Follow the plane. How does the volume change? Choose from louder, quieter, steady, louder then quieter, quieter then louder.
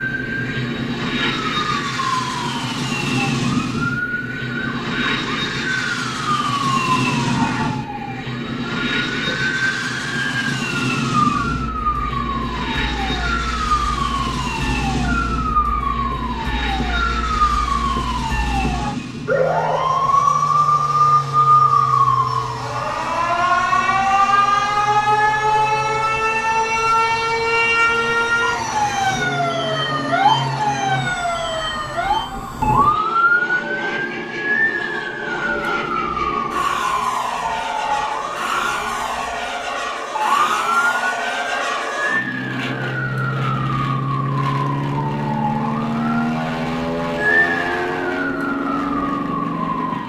quieter then louder.